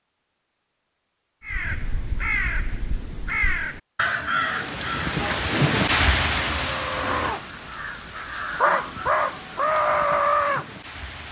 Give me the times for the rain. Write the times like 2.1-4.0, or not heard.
4.2-11.2.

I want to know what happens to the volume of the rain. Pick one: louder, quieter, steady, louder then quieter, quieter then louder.
quieter.